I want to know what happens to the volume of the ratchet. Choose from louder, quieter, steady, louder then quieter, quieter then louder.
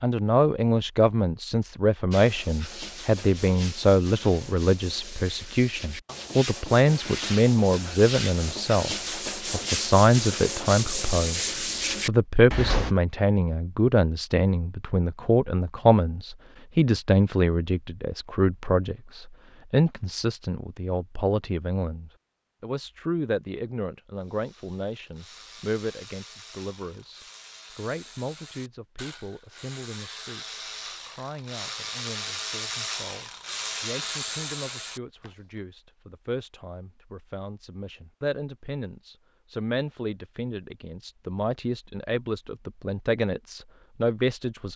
louder.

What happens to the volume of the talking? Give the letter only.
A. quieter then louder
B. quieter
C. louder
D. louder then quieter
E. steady
A.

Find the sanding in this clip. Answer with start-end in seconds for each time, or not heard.
2.1-12.9.